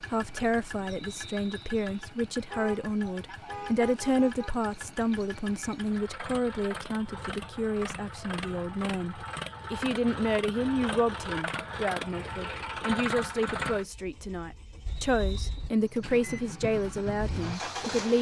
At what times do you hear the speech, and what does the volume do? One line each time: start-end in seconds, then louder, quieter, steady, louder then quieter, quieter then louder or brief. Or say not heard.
0.1-18.1 steady.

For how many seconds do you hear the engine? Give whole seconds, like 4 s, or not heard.
18 s.